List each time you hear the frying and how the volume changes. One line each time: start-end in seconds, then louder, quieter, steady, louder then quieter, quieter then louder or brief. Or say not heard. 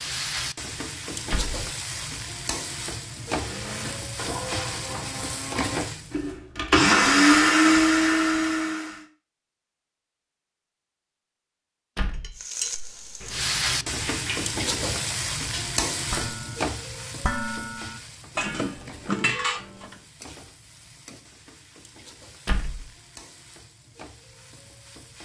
0.0-6.3 steady
12.3-25.2 quieter.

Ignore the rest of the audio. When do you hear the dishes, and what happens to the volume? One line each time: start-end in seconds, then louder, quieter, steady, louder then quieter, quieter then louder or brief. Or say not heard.
12.2-19.9 louder.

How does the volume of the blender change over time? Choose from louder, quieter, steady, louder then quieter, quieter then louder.
louder.